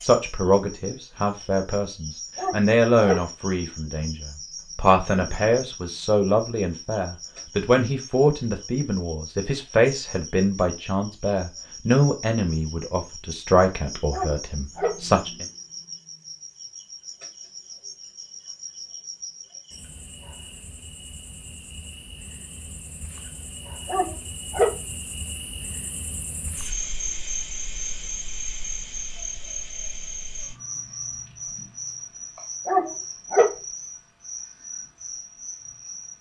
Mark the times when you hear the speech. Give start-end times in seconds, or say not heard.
0.0-15.4.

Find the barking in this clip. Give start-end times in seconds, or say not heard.
2.4-3.2, 14.1-15.0, 23.9-24.8, 32.6-33.5.